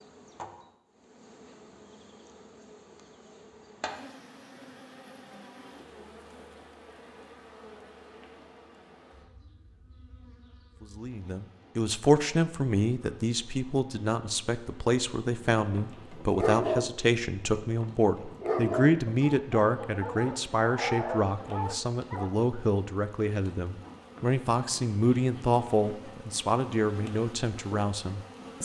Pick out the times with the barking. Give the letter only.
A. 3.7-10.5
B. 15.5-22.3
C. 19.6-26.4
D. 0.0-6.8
B.